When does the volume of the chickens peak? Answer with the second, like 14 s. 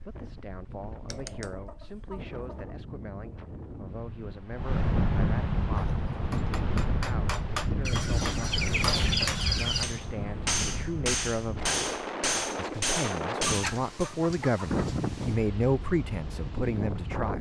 9 s.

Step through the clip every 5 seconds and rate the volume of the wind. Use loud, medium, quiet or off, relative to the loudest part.
medium, loud, loud, loud.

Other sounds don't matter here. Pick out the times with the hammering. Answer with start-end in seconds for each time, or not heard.
5.8-14.1.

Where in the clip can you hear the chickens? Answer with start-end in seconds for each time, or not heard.
1.1-2.8, 7.8-9.8, 13.4-15.0.